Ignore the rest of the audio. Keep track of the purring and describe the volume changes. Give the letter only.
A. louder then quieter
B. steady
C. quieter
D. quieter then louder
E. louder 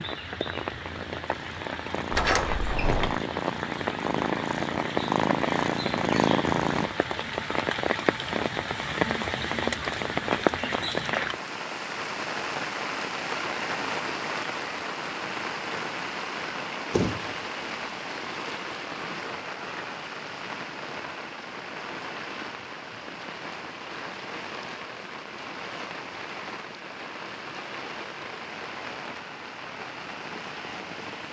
E.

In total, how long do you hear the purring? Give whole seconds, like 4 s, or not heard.
7 s.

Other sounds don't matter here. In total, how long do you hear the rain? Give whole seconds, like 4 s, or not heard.
31 s.